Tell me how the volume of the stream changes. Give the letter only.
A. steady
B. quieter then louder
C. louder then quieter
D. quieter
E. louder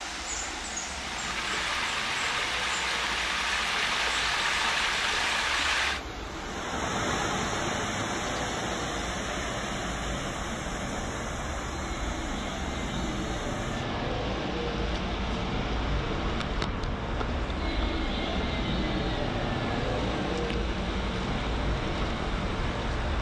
D.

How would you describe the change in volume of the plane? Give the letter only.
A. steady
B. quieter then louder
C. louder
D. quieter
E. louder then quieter
C.